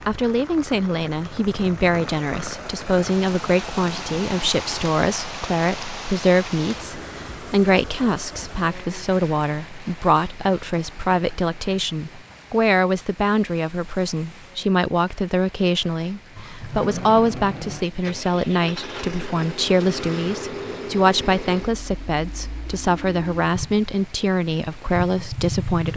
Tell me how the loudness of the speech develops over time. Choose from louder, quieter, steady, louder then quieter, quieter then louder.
steady.